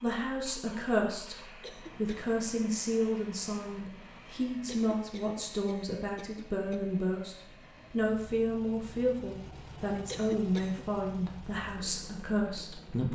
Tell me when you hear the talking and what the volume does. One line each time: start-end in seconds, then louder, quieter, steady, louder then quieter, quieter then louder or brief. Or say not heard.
0.0-1.4 brief
1.9-13.1 steady.